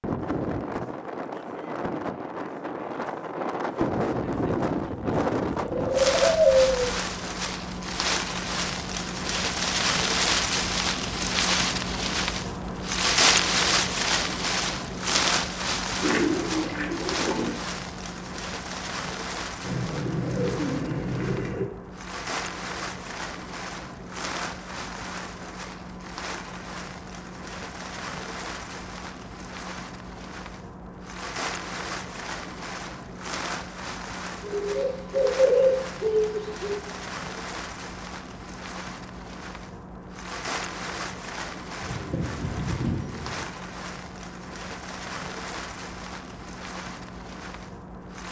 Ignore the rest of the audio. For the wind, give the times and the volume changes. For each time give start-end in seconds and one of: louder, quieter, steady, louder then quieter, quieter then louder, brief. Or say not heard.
0.0-48.2 quieter.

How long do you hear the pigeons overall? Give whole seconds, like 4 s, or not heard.
9 s.